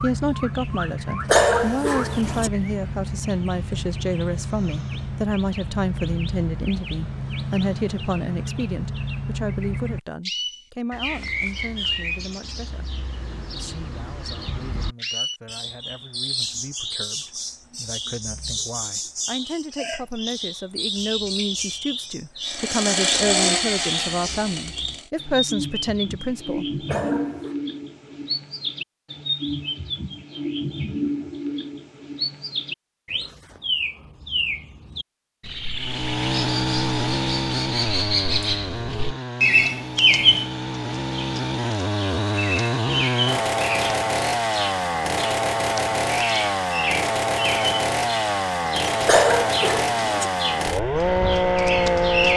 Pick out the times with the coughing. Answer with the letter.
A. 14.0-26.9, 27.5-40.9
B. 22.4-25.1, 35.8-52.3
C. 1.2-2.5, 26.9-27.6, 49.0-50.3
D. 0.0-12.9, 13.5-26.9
C.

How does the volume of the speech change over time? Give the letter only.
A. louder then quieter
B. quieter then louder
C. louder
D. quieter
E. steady
B.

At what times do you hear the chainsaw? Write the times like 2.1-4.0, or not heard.
22.4-25.1, 35.8-52.3.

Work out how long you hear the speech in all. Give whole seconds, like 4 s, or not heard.
26 s.